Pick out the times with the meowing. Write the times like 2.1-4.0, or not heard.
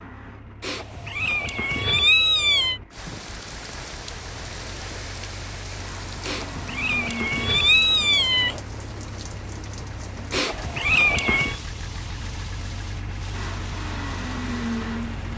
0.6-2.8, 6.2-8.6, 10.3-11.6.